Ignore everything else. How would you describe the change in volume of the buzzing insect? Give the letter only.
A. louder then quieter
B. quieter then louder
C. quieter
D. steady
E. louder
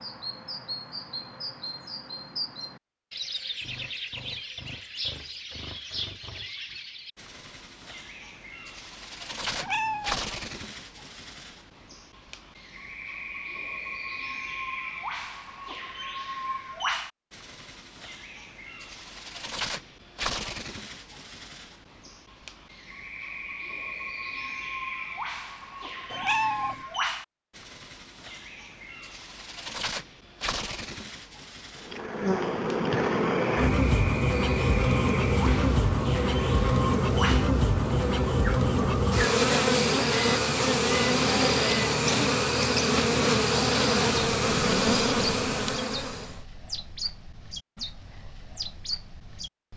D.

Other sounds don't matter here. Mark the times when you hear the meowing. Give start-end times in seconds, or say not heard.
9.5-10.2, 26.1-26.9.